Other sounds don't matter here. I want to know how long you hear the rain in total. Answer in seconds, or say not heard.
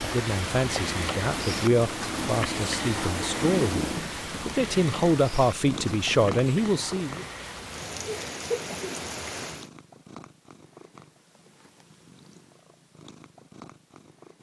10 s.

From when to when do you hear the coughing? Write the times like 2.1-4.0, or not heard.
8.1-9.0.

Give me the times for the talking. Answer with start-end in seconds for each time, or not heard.
0.0-7.2.